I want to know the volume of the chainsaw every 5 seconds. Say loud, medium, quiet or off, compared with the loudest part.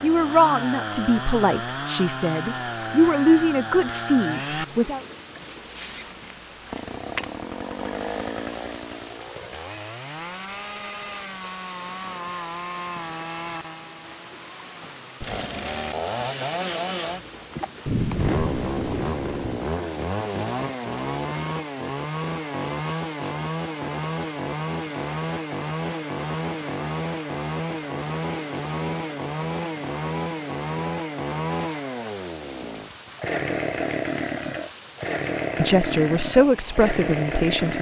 loud, medium, medium, loud, loud, loud, loud, loud.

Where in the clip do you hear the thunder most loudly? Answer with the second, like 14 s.
18 s.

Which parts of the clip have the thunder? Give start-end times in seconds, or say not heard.
17.9-19.6.